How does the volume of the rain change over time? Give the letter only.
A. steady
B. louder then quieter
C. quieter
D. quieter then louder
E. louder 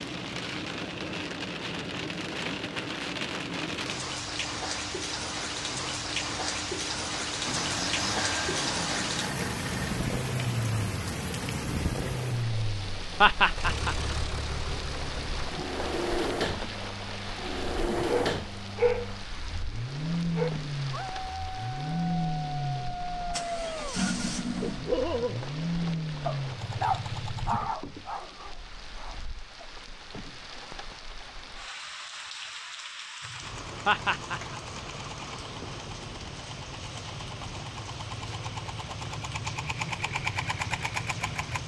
C.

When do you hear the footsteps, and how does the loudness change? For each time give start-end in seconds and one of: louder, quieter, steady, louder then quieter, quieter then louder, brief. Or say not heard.
not heard.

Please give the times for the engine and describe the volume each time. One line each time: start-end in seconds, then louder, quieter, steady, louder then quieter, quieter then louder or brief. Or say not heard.
7.5-27.6 steady
33.2-41.6 louder.